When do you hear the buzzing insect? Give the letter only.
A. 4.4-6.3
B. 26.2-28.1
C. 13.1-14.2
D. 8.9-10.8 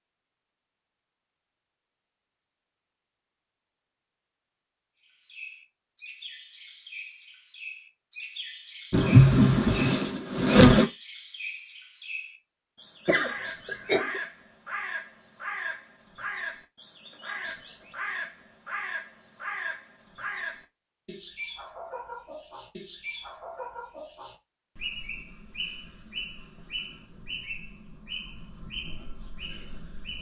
D.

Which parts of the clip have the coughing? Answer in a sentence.
You can hear the coughing from 13.1 to 14.2 s.